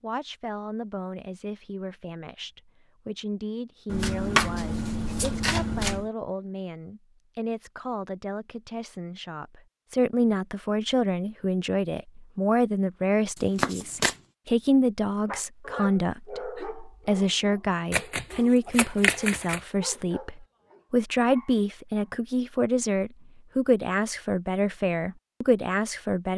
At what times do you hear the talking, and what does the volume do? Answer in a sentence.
The talking can be heard from 0.0 to 26.3 s, getting louder.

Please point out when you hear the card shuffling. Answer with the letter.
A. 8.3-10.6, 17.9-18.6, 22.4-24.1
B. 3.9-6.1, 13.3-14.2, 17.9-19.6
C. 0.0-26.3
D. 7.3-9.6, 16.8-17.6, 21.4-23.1
B.